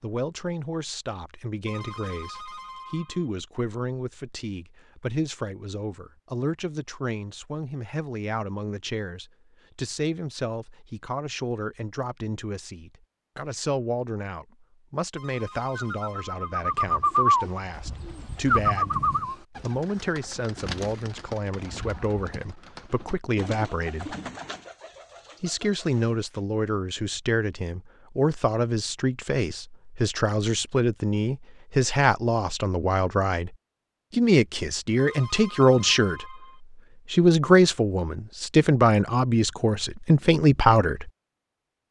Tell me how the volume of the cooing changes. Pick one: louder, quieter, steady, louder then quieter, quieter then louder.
quieter.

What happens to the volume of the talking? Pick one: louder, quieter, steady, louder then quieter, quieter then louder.
louder.